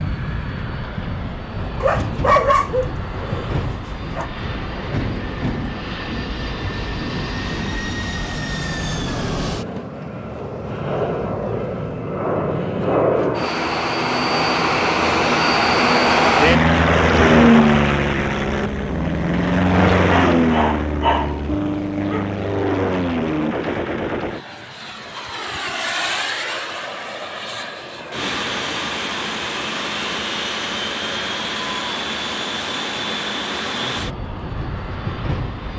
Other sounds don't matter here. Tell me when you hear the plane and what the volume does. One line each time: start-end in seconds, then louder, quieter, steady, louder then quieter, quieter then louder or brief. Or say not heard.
0.0-35.7 louder then quieter.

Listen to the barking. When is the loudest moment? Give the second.
2 s.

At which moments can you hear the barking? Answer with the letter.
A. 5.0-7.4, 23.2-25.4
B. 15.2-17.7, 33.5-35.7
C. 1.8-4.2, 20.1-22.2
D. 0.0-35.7
C.